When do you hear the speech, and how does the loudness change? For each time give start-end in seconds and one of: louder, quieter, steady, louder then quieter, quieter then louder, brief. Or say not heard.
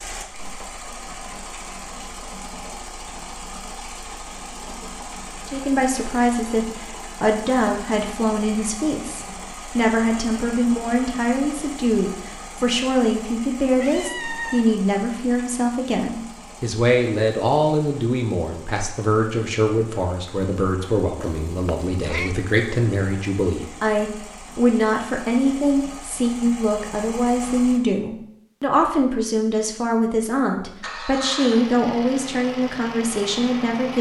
5.5-33.9 steady.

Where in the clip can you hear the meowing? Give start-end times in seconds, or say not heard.
13.8-14.8, 21.1-22.4.